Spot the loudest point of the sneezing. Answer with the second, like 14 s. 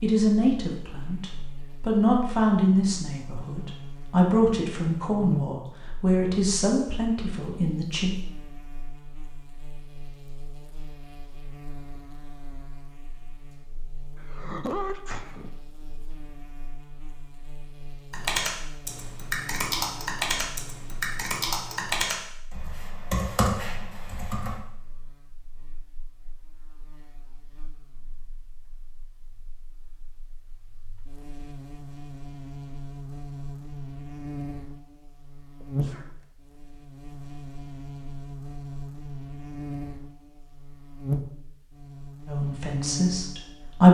15 s.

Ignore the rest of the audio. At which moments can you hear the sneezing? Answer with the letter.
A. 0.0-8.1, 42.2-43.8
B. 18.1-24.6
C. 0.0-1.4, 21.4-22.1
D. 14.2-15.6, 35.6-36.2
D.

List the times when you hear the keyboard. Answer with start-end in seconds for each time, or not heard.
18.1-24.6.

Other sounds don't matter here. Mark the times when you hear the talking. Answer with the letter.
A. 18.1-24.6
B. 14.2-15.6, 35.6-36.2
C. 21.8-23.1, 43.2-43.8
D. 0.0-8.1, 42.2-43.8
D.